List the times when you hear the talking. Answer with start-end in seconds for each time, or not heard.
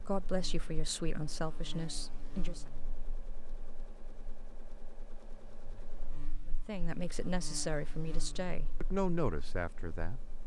0.0-2.6, 6.5-10.2.